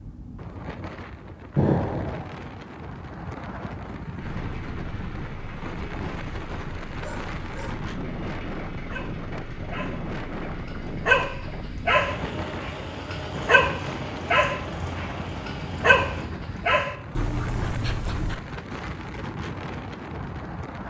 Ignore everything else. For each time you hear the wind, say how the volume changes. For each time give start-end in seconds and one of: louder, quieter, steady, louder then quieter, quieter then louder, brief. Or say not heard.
0.0-20.8 steady.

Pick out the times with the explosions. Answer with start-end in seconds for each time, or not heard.
1.6-2.2.